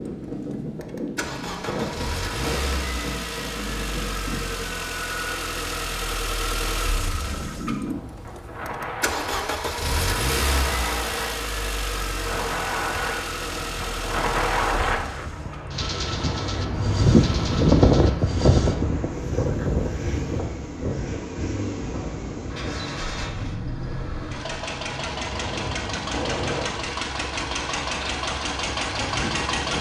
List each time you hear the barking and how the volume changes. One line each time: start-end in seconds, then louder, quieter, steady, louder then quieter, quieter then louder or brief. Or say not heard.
not heard.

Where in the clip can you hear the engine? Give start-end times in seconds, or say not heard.
0.0-29.7.